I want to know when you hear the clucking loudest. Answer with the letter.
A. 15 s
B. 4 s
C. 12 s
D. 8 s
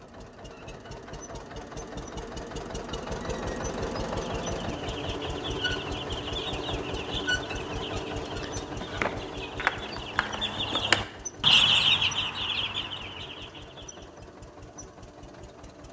C.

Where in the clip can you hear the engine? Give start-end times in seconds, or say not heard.
0.0-15.8.